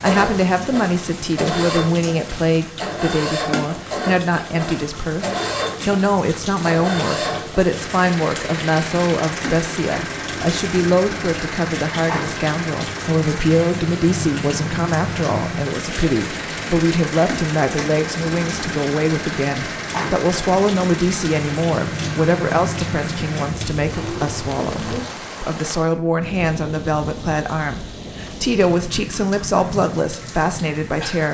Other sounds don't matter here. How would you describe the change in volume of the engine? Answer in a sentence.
The loudness of the engine stays about the same.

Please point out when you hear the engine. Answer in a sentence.
The engine can be heard from 0.0 to 25.1 s.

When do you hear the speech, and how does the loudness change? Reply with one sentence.
You can hear the speech from 0.0 to 31.3 s, at a steady volume.